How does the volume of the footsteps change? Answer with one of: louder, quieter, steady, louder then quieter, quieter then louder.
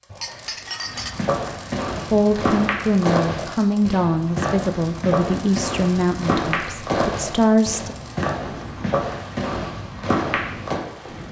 steady.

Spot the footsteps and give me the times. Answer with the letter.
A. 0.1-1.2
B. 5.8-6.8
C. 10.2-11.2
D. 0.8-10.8
D.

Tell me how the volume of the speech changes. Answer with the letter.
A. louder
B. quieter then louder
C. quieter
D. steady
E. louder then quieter
D.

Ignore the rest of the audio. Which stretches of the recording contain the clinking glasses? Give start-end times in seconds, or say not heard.
0.1-1.2.